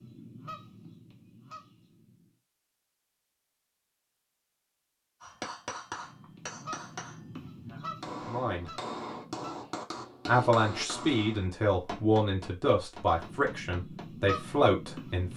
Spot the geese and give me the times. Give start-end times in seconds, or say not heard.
0.0-2.4, 5.9-9.8, 13.1-15.3.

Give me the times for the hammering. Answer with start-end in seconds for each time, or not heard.
5.2-14.2.